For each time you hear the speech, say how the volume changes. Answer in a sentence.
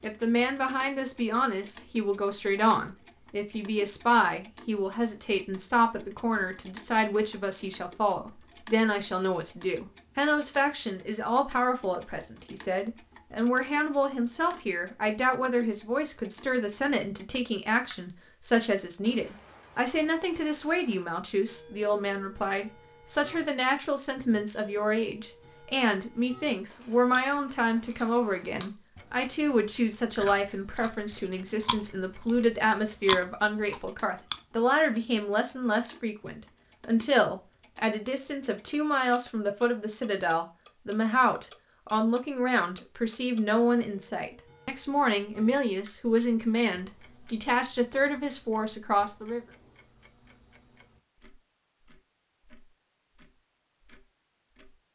You can hear the speech from 0.0 to 49.4 s, at a steady volume.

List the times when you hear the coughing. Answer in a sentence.
The coughing can't be heard in this clip.